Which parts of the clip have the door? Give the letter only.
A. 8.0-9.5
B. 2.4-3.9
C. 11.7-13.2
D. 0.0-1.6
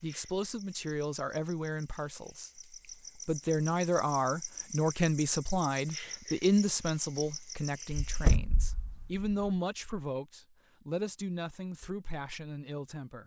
A.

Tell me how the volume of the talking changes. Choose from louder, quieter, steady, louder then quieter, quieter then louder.
louder then quieter.